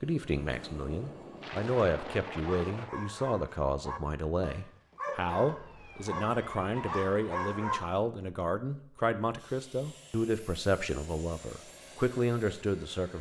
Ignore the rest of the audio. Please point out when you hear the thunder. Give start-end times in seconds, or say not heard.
0.5-3.0.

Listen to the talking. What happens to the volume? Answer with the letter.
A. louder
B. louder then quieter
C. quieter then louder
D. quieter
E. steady
E.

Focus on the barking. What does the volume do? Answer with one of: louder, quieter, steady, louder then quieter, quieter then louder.
louder.